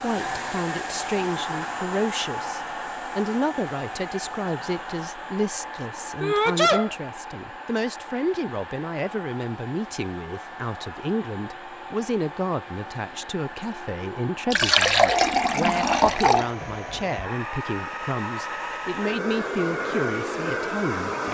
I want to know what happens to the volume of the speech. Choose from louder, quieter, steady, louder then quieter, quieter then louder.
steady.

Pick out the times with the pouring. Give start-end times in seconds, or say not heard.
14.5-16.5.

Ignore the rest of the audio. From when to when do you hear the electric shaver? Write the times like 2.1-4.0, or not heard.
not heard.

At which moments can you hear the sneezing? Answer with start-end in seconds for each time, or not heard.
6.2-7.0.